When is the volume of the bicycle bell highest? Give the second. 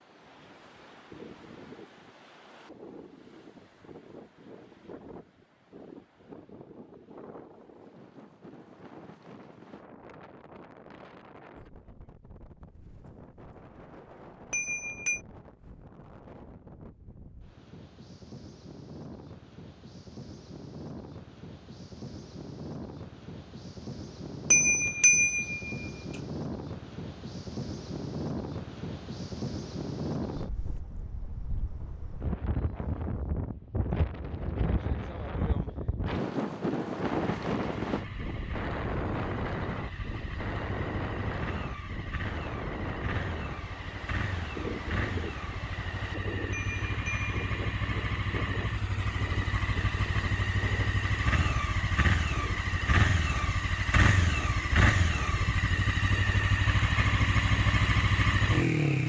25 s.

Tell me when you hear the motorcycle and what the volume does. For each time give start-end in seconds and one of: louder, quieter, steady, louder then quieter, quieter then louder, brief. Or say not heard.
37.1-59.0 louder.